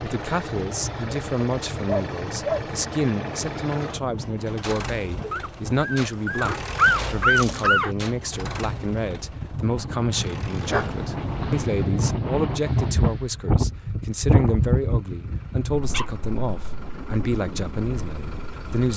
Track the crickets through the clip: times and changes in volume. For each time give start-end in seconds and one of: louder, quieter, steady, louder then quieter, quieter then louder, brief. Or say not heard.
not heard.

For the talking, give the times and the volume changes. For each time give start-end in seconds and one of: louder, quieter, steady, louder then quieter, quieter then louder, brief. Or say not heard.
0.0-18.9 steady.